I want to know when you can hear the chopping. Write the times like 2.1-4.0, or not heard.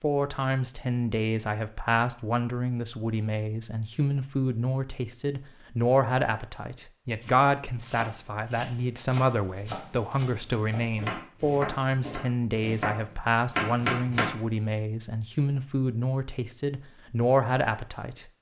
7.2-14.3.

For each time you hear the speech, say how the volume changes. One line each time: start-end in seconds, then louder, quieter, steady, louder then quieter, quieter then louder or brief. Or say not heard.
0.0-18.2 steady.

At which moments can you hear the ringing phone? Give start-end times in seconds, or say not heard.
not heard.